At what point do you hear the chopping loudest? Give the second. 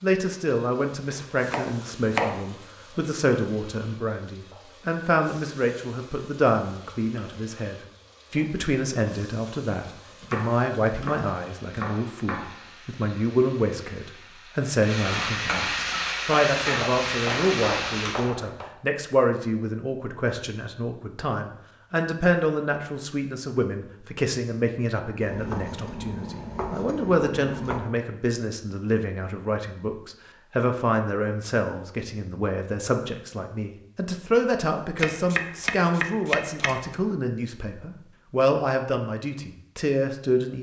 2 s.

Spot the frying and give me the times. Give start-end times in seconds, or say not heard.
0.0-18.3.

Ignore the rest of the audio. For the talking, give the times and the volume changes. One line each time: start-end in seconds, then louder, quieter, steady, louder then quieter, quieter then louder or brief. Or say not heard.
0.0-40.5 steady.